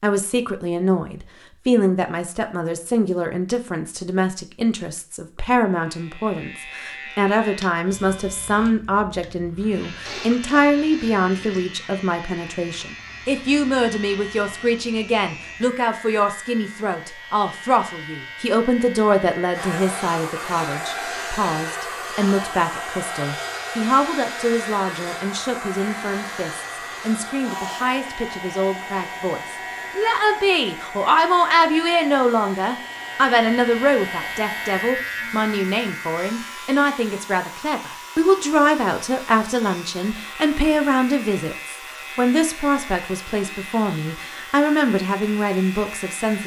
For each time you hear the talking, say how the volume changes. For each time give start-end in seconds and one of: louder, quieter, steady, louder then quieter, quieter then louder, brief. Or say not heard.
0.0-46.4 steady.